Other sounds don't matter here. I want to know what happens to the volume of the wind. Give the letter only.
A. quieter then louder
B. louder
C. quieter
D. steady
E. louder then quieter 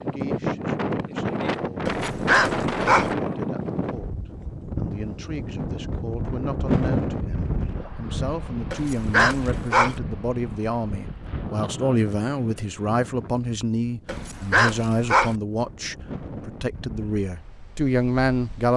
C.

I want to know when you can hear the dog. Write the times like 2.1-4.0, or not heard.
1.9-3.1, 8.7-10.0, 14.1-15.3.